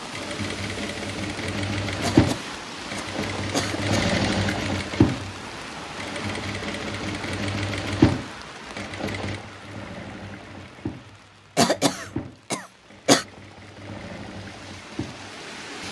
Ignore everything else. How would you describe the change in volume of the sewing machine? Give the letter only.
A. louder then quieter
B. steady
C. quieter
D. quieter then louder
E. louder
C.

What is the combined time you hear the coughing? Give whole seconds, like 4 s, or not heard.
4 s.